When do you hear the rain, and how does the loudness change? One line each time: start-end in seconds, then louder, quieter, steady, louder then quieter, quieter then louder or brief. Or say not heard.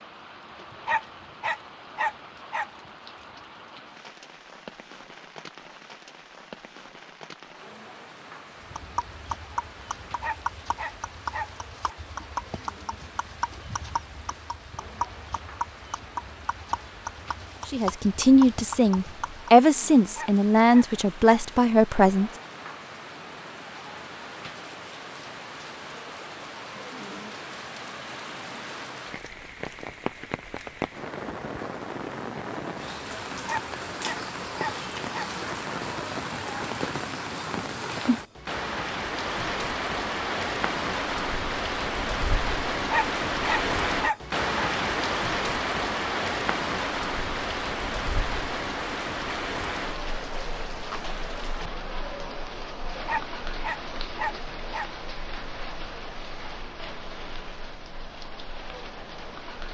0.0-59.6 louder then quieter.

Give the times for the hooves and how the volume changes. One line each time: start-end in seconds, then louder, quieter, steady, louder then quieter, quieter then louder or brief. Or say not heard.
8.6-19.5 steady.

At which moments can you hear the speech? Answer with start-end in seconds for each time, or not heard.
17.7-22.3.